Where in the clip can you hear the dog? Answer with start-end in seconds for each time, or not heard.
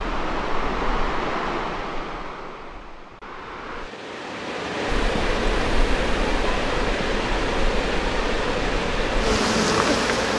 not heard.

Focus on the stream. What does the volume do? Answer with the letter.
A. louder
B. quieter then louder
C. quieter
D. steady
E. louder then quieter
B.